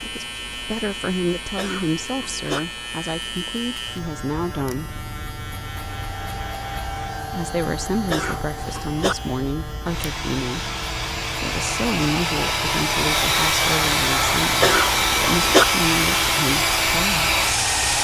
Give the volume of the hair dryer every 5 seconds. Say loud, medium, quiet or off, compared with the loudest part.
off, quiet, loud, loud.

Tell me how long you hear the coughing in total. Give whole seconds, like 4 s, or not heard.
3 s.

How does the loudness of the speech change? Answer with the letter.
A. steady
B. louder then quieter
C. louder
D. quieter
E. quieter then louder
A.